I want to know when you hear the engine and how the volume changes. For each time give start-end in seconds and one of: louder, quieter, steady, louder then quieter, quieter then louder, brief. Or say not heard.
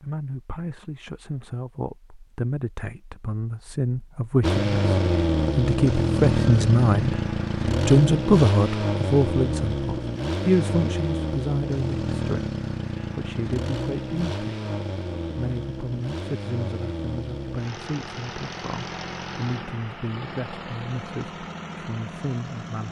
4.4-22.8 quieter.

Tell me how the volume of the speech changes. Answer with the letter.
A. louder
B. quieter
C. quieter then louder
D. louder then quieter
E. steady
D.